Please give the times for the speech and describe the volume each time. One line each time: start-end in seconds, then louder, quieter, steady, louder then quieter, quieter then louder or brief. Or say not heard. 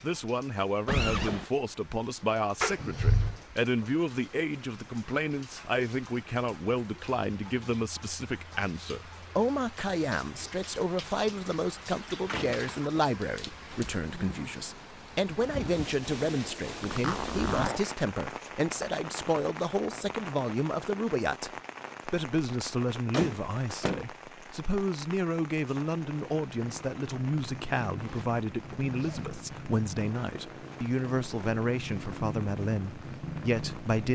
0.0-34.1 steady.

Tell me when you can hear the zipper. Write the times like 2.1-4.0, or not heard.
0.8-1.5, 16.8-17.8, 27.9-29.3.